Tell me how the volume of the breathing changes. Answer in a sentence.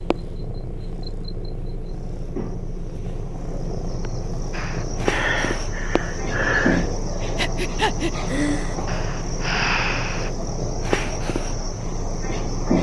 The volume of the breathing stays about the same.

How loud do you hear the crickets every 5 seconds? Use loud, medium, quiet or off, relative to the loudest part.
medium, loud, loud.